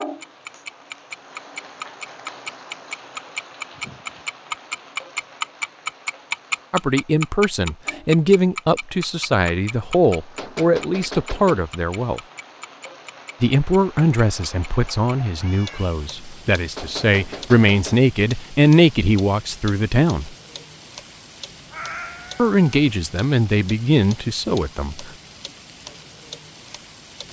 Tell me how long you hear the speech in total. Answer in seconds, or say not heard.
15 s.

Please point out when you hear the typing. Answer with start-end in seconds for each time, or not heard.
not heard.